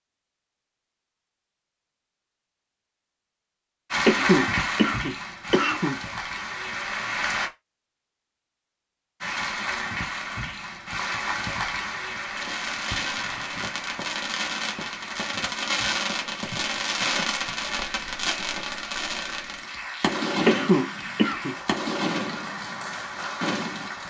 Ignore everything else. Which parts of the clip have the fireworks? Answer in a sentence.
The fireworks can be heard from 12.3 to 23.9 s.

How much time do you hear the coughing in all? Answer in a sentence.
You can hear the coughing for 3 seconds altogether.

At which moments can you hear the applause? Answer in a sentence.
You can hear the applause from 3.9 to 7.5 s and from 9.2 to 24.0 s.